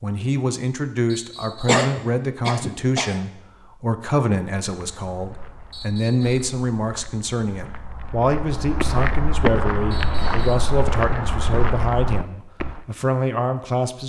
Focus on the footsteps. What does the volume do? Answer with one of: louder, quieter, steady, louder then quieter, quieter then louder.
louder.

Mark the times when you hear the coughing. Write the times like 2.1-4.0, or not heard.
1.5-3.2.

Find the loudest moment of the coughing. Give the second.
2 s.